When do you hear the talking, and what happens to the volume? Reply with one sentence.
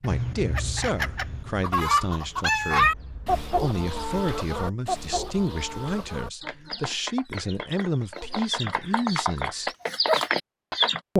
You can hear the talking from 0.0 to 9.7 s, at a steady volume.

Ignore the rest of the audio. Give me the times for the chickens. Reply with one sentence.
The chickens can be heard from 0.1 to 11.0 s.